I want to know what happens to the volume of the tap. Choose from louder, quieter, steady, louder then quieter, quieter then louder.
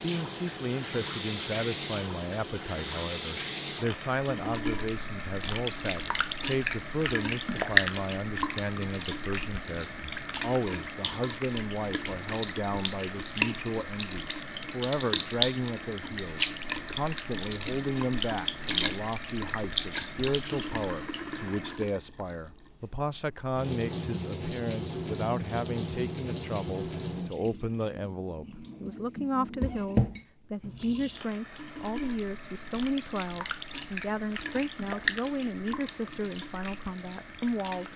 quieter.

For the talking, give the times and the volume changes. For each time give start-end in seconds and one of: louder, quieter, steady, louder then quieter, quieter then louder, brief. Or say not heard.
0.0-37.9 steady.